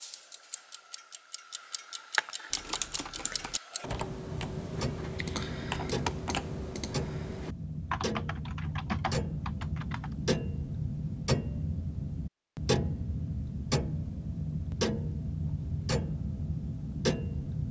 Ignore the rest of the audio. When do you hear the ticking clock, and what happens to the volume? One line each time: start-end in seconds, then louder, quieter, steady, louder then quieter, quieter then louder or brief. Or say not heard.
0.0-17.6 louder.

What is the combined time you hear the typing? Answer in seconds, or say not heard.
8 s.